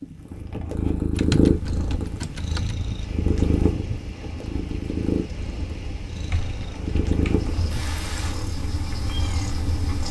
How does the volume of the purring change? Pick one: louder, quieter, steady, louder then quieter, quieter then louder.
quieter.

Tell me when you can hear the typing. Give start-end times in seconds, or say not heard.
1.1-2.8, 6.3-7.7.